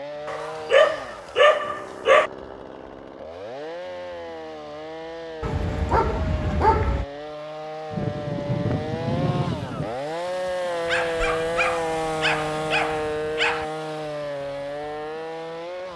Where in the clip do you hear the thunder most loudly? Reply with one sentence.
The volume of the thunder peaks at 9 seconds.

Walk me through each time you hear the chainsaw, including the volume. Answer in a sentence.
You can hear the chainsaw from 0.0 to 15.9 s, getting louder.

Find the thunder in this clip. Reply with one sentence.
The thunder can be heard from 7.9 to 9.9 s.